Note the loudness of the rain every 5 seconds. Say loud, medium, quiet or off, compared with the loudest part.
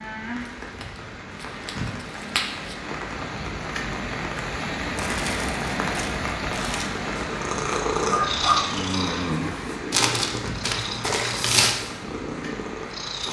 loud, loud, medium.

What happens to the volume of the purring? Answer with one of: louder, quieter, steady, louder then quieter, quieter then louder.
quieter.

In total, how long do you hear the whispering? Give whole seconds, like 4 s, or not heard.
not heard.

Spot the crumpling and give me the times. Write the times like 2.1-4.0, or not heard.
0.8-2.8, 5.0-6.9, 9.9-11.8.